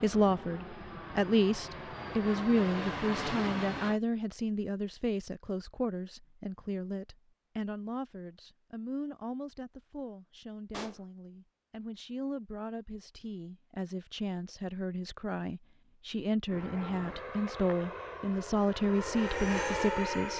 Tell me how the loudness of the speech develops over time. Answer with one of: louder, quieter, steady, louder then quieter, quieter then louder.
quieter then louder.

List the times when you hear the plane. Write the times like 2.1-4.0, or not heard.
0.0-4.0, 16.4-20.3.